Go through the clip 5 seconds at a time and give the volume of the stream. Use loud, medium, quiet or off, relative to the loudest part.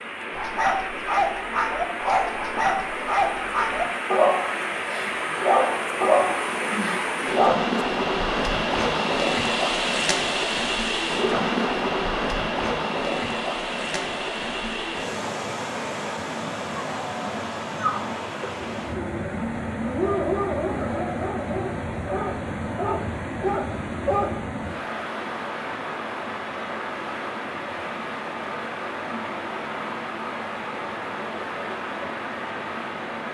medium, loud, loud, medium, medium, medium, medium.